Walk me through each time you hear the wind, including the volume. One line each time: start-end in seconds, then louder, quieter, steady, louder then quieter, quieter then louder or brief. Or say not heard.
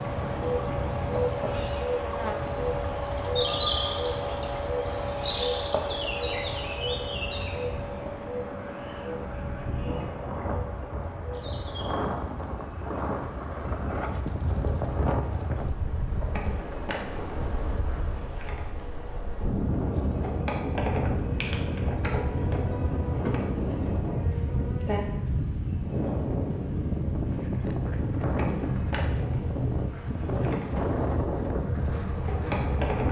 0.0-33.0 louder.